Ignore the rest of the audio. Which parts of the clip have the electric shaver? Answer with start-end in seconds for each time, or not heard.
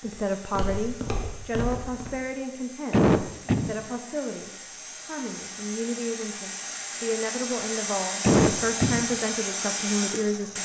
not heard.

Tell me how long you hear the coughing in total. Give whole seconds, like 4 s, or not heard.
2 s.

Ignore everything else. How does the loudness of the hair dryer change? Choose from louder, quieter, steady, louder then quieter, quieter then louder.
louder.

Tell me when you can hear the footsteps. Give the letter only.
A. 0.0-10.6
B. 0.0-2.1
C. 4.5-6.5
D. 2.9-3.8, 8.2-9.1
B.